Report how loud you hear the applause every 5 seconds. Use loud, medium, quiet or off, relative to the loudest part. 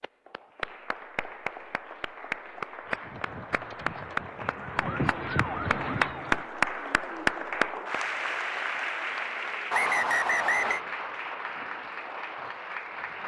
medium, loud, medium.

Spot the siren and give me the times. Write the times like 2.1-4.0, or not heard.
2.9-6.5.